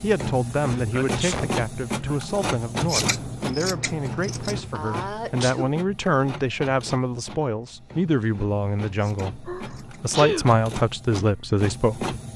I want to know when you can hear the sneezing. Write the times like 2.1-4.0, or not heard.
0.7-2.2, 4.7-5.8, 9.4-10.4.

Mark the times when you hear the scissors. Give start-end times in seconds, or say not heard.
2.9-4.6, 8.9-10.1.